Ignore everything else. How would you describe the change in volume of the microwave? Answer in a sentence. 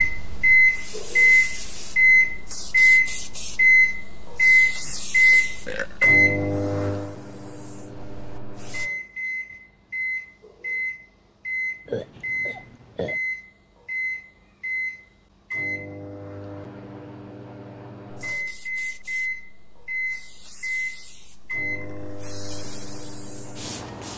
The loudness of the microwave goes down.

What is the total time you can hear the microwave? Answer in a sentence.
You can hear the microwave for 24 seconds altogether.